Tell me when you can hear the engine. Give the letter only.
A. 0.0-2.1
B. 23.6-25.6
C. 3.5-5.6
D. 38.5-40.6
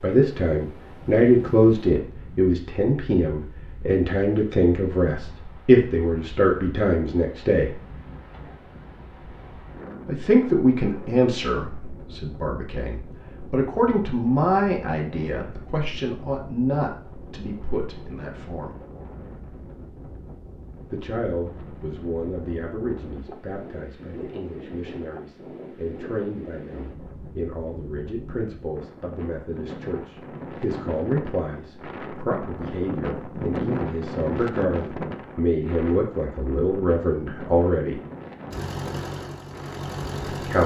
D.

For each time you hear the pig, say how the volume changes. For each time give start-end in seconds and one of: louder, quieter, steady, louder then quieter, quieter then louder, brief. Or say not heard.
not heard.